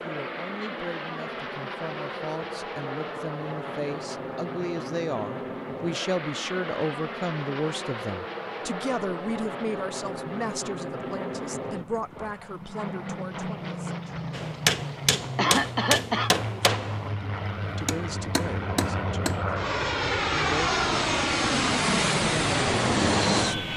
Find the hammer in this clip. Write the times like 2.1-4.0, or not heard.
14.3-19.6.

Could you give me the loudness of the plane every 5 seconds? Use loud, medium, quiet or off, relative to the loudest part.
medium, medium, medium, medium, loud.